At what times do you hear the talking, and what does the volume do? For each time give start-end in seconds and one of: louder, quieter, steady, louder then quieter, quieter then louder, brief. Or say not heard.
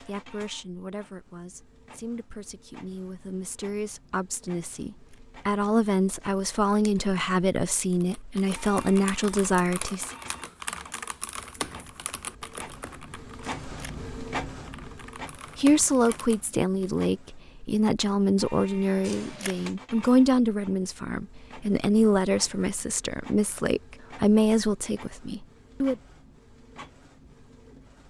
0.0-10.1 louder
15.6-25.9 steady.